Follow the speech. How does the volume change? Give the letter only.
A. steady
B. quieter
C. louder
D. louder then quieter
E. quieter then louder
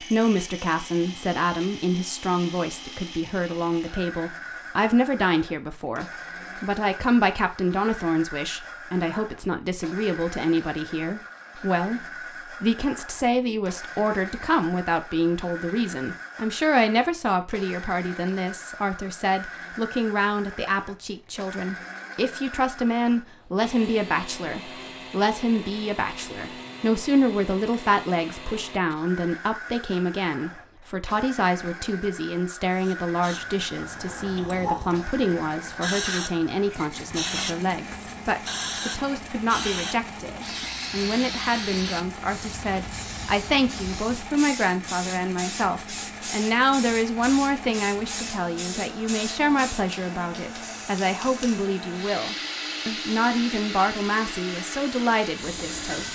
A.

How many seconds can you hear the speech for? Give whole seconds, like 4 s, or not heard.
56 s.